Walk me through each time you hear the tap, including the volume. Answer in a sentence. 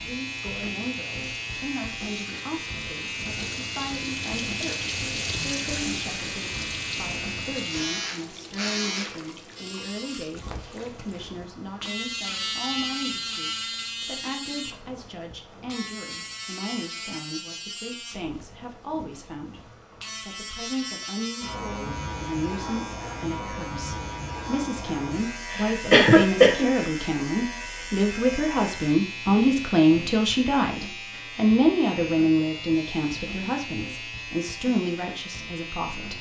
You can hear the tap from 0.2 to 11.4 s, getting louder then quieter.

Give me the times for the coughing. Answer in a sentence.
The coughing can be heard from 25.5 to 26.7 s.